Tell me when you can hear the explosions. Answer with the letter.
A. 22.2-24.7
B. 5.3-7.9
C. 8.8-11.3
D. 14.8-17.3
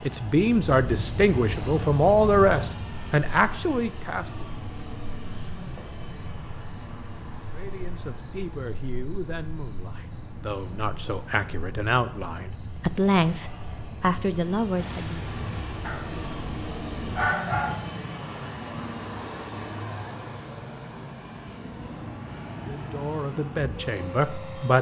D.